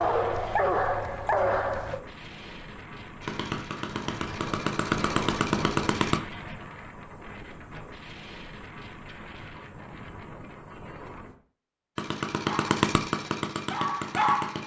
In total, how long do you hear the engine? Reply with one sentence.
You can hear the engine for 6 seconds altogether.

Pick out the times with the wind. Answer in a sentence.
The wind can be heard from 0.0 to 11.4 s.